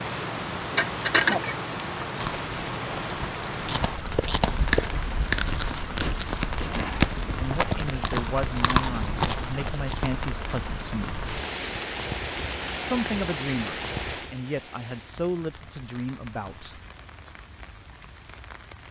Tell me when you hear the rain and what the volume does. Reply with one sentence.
The rain can be heard from 0.0 to 18.8 s, getting quieter.